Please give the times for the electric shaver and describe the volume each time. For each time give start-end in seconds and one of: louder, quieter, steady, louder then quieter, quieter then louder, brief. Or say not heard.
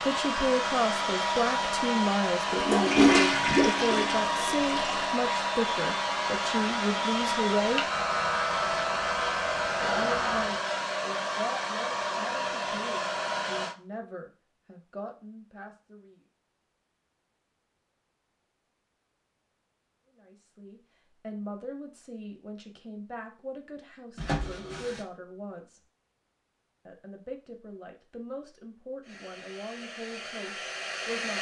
0.0-10.7 steady.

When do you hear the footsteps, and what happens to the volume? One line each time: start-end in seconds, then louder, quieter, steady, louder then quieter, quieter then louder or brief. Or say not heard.
not heard.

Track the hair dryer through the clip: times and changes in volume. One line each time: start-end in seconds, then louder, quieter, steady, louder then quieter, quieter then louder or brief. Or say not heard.
0.0-13.8 steady
29.0-31.3 brief.